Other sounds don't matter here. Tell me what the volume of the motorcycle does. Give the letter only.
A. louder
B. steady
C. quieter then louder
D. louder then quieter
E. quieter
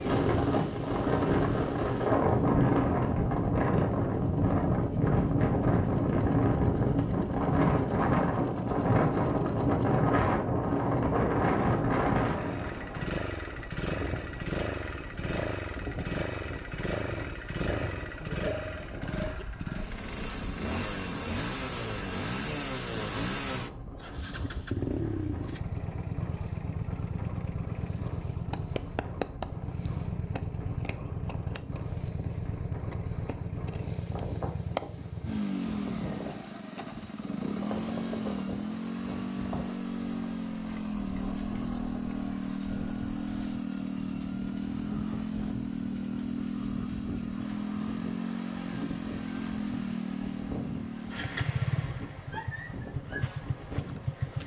A.